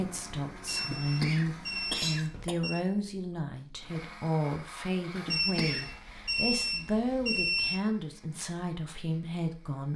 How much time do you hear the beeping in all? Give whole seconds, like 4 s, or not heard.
5 s.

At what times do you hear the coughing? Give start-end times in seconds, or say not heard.
0.8-2.5, 5.2-5.9.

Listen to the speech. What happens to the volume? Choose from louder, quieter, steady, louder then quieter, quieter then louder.
steady.